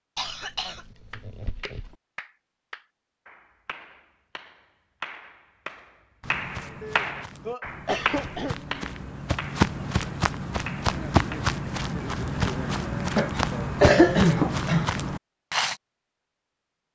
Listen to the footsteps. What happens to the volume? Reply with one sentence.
The volume of the footsteps goes up.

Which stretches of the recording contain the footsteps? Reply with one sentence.
You can hear the footsteps from 6.2 to 15.8 s.